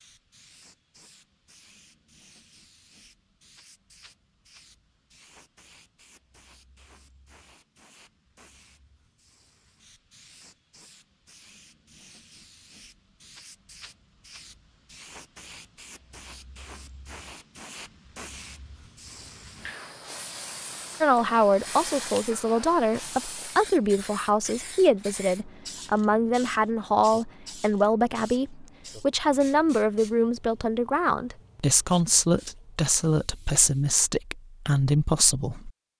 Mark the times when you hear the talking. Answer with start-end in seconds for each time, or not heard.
21.0-35.7.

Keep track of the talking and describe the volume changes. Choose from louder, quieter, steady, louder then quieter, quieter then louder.
steady.